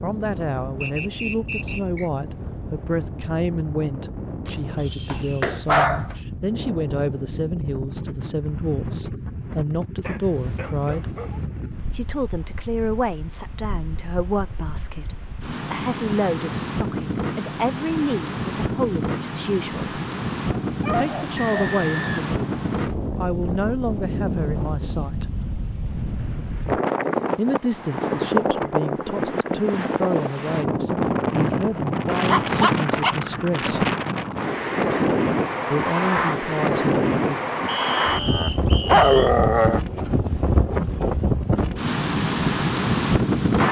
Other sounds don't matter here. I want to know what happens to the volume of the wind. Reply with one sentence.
The loudness of the wind goes up.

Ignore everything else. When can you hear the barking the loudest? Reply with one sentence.
The loudest moment of the barking is at 39 seconds.